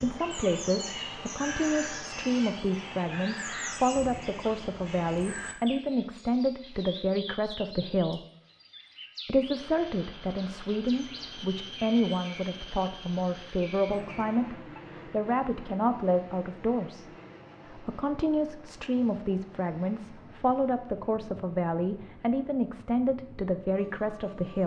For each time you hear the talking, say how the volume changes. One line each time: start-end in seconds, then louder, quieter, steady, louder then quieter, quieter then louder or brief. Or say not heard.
0.0-8.2 steady
9.2-17.1 steady
17.7-24.6 steady.